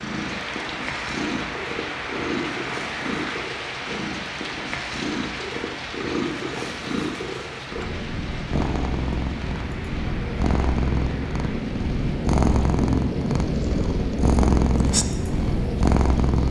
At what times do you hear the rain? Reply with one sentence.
The rain can be heard from 0.0 to 16.4 s.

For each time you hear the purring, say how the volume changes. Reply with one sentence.
You can hear the purring from 0.0 to 16.4 s, getting louder.